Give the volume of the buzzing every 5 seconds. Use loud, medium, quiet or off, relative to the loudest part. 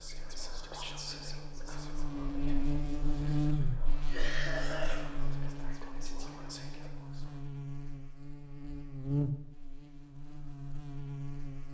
loud, loud, medium.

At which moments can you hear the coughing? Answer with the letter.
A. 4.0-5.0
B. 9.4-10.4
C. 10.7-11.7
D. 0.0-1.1
A.